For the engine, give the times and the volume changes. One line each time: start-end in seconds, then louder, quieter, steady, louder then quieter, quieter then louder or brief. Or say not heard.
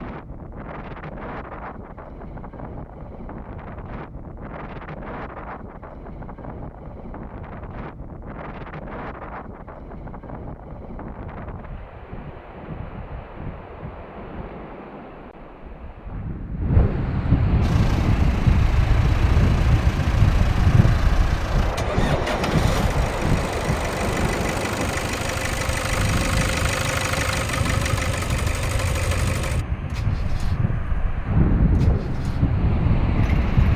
17.6-33.7 louder then quieter.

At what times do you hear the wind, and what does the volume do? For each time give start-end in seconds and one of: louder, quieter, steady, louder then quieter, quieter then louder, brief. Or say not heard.
0.0-33.7 louder.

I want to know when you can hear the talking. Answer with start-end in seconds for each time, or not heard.
not heard.